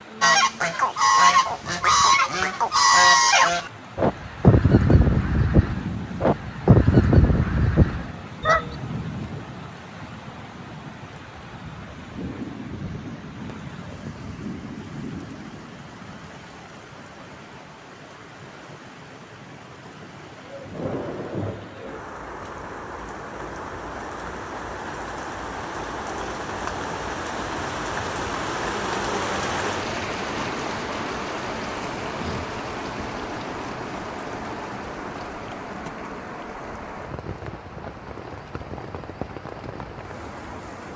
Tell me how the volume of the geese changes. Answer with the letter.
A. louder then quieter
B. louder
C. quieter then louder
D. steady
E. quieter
D.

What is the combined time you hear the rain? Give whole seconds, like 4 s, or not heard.
41 s.